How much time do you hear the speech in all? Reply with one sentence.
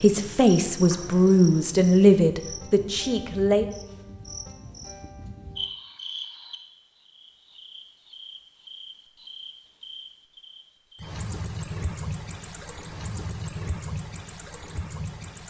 The speech can be heard for 4 seconds in total.